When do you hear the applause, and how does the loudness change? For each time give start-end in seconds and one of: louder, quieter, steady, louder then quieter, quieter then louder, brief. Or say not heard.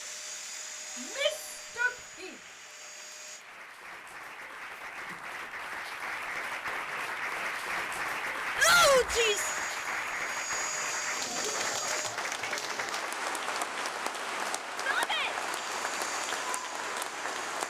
0.0-17.6 louder.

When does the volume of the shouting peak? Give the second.
9 s.